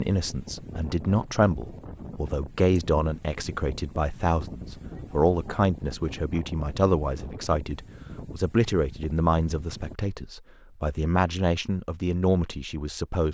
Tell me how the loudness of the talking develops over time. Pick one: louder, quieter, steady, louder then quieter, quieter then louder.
steady.